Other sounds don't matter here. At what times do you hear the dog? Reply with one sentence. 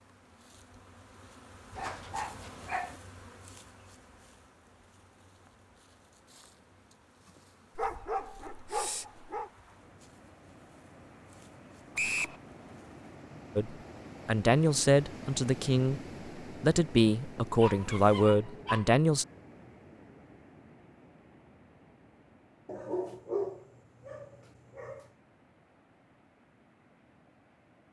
The dog can be heard from 1.8 to 3.0 s, from 7.8 to 9.5 s, from 17.1 to 18.9 s and from 22.6 to 25.1 s.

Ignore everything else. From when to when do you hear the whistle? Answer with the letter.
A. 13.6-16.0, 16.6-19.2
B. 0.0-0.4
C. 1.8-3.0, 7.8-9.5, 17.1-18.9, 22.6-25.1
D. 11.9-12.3
D.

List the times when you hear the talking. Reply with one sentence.
The talking can be heard from 13.6 to 16.0 s and from 16.6 to 19.2 s.